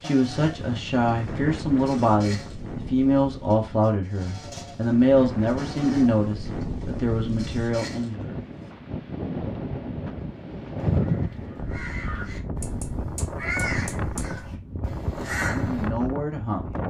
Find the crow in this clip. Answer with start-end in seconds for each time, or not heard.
10.8-15.9.